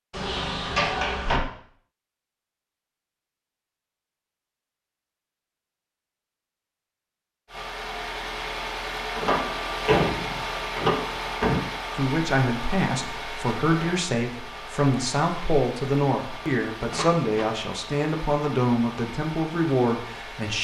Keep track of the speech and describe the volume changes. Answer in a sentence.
The loudness of the speech stays about the same.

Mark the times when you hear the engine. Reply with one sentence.
You can hear the engine from 7.5 to 20.5 s.